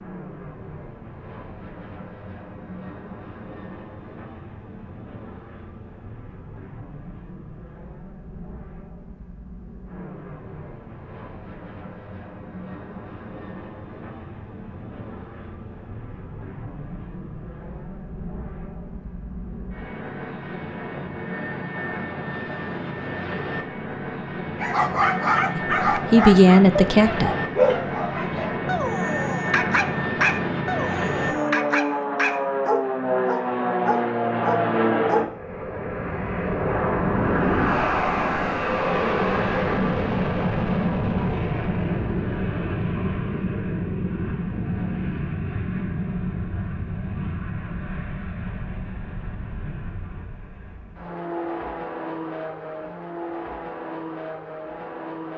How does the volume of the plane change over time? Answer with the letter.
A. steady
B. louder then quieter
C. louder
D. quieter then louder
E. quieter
B.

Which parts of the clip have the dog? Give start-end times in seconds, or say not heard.
24.6-35.2.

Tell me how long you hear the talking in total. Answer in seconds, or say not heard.
2 s.